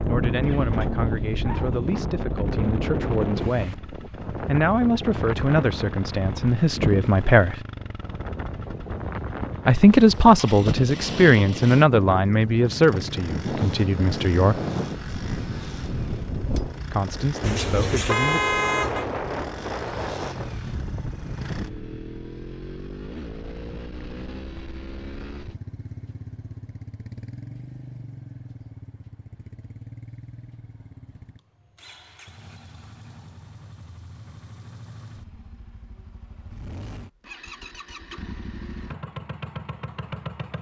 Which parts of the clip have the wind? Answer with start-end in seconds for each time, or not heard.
0.0-22.0.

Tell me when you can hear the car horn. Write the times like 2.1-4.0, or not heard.
17.4-19.1.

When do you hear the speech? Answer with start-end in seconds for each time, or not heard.
0.1-7.7, 9.7-14.7, 16.9-18.4.